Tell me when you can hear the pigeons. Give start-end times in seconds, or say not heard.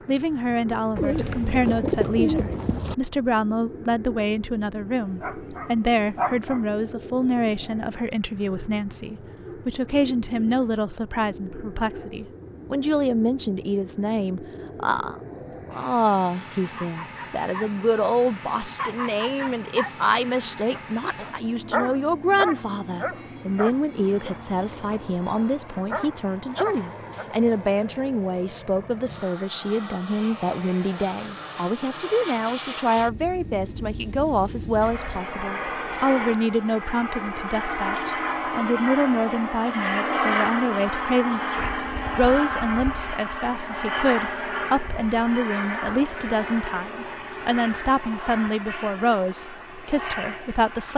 0.9-3.0.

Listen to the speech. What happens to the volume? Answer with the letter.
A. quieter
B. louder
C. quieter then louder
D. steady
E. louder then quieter
D.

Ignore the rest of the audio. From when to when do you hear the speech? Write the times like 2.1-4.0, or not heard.
0.1-50.9.